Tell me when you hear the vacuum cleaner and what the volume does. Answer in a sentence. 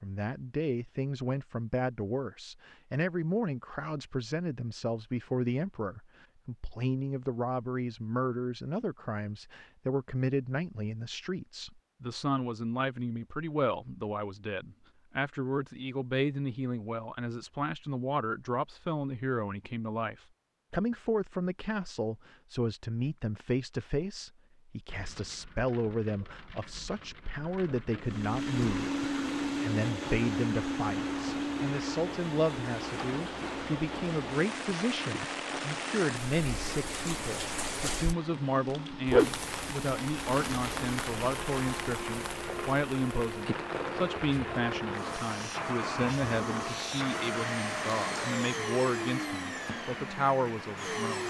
You can hear the vacuum cleaner from 28.0 to 51.2 s, getting quieter then louder.